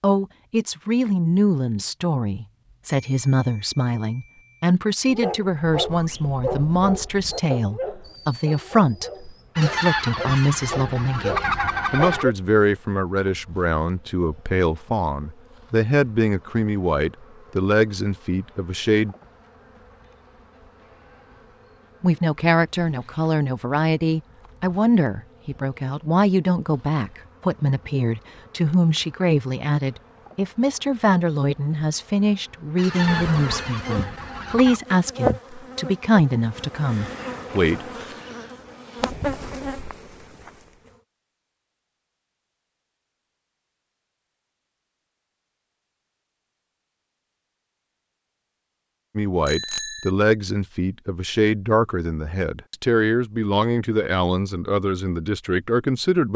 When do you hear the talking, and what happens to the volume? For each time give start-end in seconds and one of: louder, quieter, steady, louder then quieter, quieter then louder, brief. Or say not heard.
0.0-19.1 steady
22.0-37.9 steady
49.1-56.3 steady.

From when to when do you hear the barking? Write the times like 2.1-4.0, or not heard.
5.0-12.3.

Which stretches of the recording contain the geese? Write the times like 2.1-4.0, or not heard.
9.6-12.2, 32.8-34.8.